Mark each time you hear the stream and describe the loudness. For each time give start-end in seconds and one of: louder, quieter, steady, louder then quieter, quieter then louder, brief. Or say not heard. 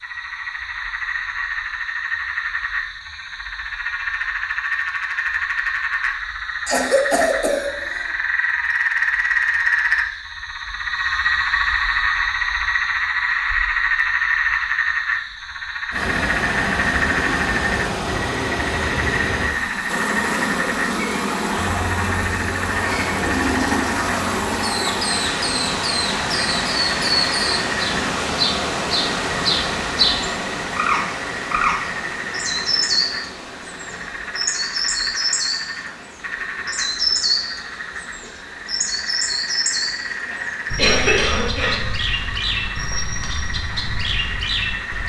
15.9-45.0 quieter.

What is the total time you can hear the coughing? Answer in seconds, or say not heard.
3 s.